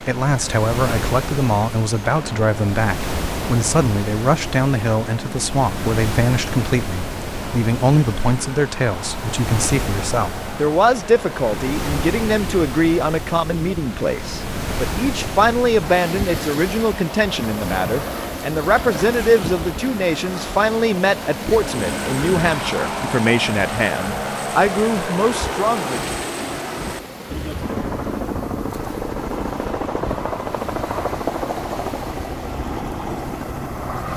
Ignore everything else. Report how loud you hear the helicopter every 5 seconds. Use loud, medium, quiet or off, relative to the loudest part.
medium, medium, medium, medium, loud, loud, loud.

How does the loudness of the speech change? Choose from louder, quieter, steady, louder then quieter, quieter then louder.
steady.